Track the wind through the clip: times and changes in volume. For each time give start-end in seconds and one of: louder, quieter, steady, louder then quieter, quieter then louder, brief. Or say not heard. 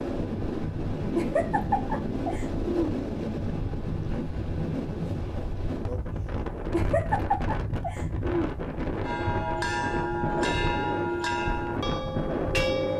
0.0-12.9 steady.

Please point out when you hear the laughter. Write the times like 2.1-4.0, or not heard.
1.1-2.9, 6.7-8.5.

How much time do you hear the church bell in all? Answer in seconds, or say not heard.
4 s.